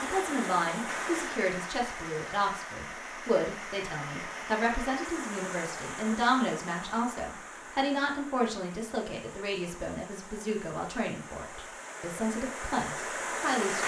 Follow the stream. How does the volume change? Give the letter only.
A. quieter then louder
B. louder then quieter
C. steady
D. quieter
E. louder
A.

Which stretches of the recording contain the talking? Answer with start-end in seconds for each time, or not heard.
0.0-13.8.